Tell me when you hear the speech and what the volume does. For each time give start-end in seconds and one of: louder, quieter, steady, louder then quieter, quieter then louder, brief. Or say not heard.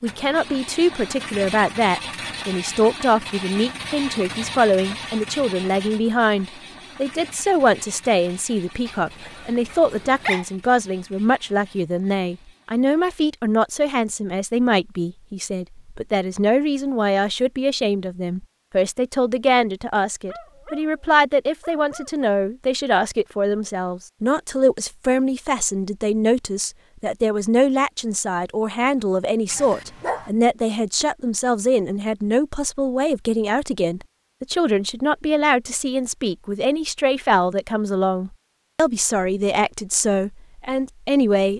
0.0-41.5 steady.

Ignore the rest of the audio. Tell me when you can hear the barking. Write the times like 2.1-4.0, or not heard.
8.8-10.4, 20.2-22.2, 29.5-30.3.